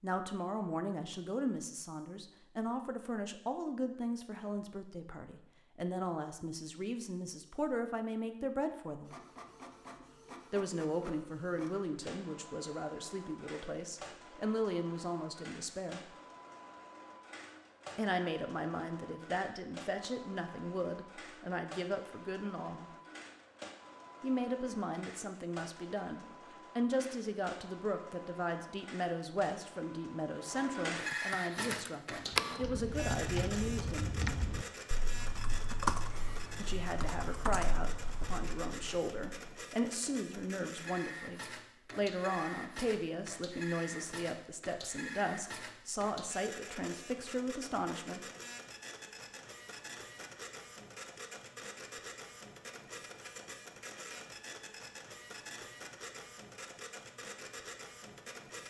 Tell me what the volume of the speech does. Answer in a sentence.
The loudness of the speech stays about the same.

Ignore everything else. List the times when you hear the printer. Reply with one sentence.
You can hear the printer from 9.1 to 58.6 s.